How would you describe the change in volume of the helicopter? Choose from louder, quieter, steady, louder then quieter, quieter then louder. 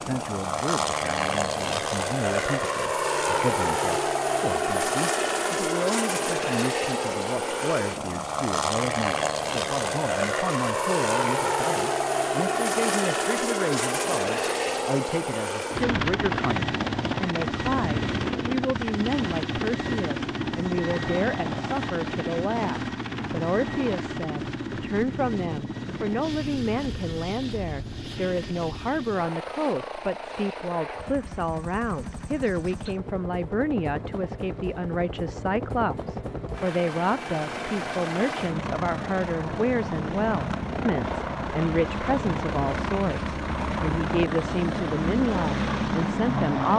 quieter then louder.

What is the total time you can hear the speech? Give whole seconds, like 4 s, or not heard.
47 s.